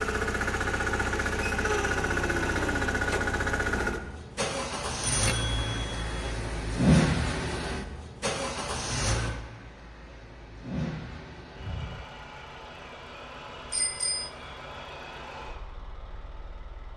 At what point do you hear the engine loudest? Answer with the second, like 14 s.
7 s.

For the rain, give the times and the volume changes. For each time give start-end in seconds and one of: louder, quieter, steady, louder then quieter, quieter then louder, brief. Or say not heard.
not heard.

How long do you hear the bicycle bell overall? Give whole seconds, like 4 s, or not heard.
2 s.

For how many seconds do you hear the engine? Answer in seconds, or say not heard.
17 s.